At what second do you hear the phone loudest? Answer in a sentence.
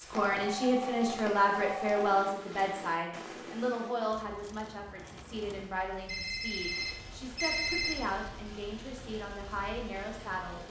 The volume of the phone peaks at 8 seconds.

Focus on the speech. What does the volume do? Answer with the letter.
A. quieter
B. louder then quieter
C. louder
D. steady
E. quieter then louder
A.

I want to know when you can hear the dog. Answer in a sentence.
You can't hear the dog here.